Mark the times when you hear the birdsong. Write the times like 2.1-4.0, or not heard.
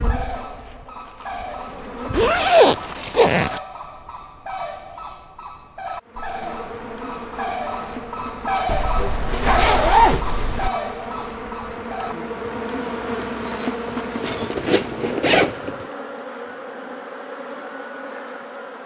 0.0-12.2.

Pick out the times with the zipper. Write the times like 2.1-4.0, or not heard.
2.1-3.6, 8.7-10.7, 14.2-15.8.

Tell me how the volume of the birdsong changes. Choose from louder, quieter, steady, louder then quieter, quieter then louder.
louder.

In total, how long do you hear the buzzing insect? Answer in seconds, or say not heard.
15 s.